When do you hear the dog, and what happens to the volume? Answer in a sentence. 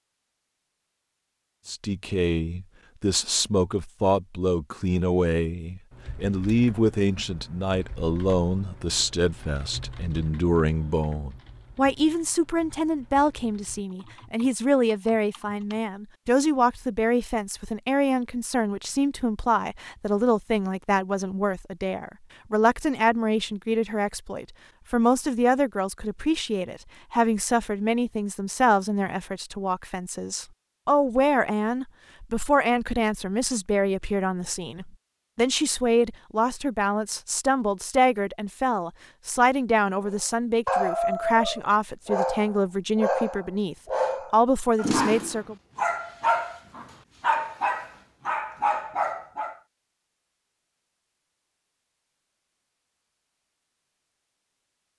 The dog can be heard from 40.0 to 49.5 s, at a steady volume.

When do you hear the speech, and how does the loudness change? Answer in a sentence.
You can hear the speech from 1.6 to 45.5 s, at a steady volume.